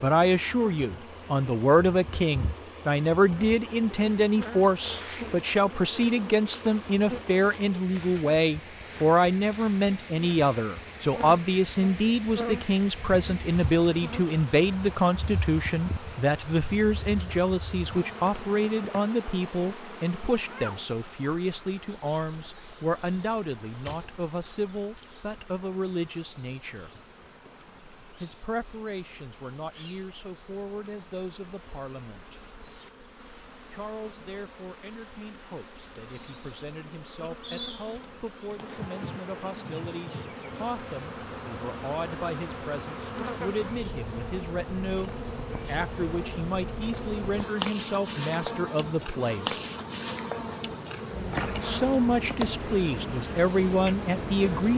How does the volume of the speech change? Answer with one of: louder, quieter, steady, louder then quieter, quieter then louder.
quieter then louder.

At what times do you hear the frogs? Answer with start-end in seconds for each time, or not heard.
not heard.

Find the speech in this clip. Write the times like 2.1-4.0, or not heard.
0.0-26.9, 28.2-32.5, 33.7-49.6, 51.5-54.7.